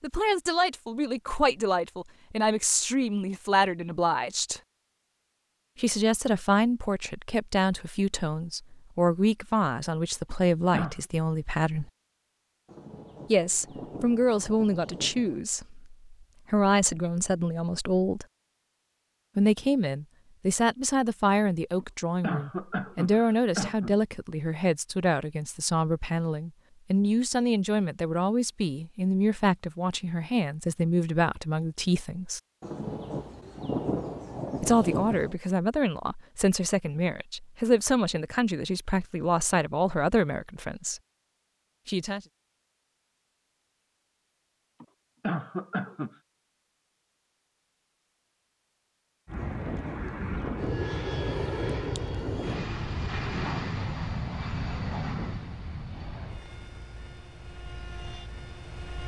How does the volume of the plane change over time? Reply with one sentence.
The volume of the plane goes down.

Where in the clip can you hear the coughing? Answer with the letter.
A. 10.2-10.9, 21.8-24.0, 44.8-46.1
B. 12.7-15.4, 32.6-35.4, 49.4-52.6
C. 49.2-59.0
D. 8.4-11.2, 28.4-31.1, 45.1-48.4
A.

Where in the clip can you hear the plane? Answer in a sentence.
You can hear the plane from 49.2 to 59.0 s.